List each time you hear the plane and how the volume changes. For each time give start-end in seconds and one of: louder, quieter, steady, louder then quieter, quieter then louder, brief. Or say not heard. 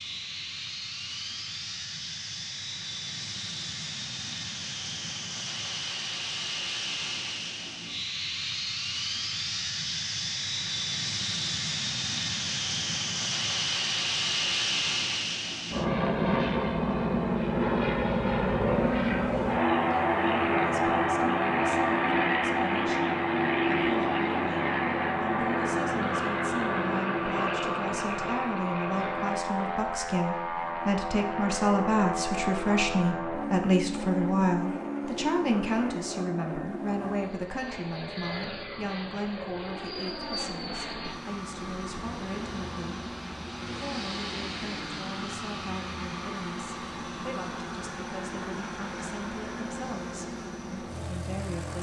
0.0-51.7 louder then quieter.